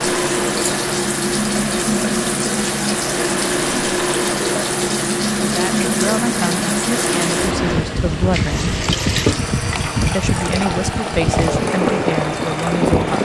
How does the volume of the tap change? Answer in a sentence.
The loudness of the tap stays about the same.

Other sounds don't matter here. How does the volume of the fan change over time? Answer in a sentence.
The volume of the fan stays about the same.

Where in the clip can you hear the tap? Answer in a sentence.
You can hear the tap from 0.0 to 13.1 s.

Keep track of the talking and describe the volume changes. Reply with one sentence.
The loudness of the talking stays about the same.